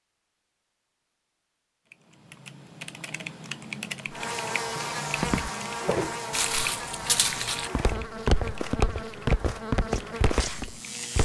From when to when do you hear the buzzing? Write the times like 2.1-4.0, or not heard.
4.0-11.2.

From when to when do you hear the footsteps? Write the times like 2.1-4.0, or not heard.
5.2-11.2.